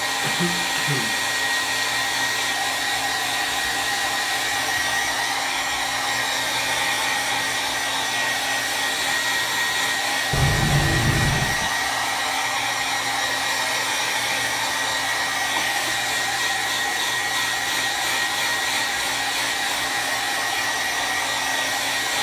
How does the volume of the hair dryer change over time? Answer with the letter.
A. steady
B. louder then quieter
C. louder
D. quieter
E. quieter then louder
A.